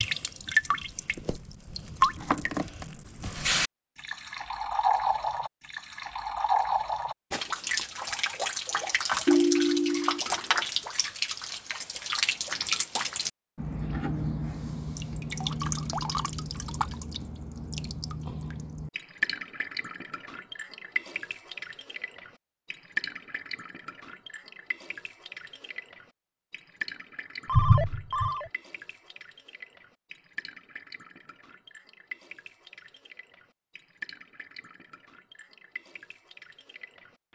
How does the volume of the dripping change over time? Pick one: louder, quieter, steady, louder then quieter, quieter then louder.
quieter.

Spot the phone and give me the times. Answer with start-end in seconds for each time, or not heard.
9.2-10.2, 27.4-28.4.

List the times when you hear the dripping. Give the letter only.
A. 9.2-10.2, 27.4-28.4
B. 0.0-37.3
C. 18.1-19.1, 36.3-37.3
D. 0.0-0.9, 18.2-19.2
B.